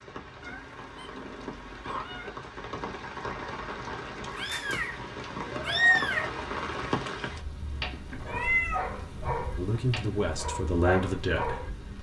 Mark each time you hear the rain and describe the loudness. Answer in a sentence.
You can hear the rain from 0.0 to 11.9 s, getting louder then quieter.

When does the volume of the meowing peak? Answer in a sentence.
The volume of the meowing peaks at 6 seconds.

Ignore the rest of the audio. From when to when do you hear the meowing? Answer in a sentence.
You can hear the meowing from 0.4 to 2.3 s, from 4.3 to 6.3 s and from 8.2 to 8.8 s.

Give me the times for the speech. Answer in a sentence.
The speech can be heard from 9.6 to 11.7 s.